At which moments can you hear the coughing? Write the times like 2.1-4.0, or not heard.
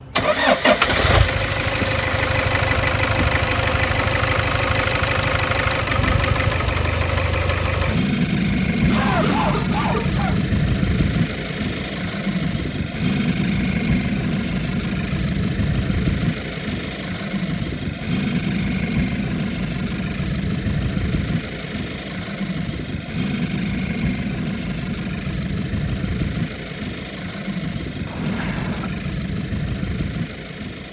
8.8-10.4, 28.1-28.9.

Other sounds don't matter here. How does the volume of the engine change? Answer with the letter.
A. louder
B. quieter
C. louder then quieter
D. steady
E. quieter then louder
B.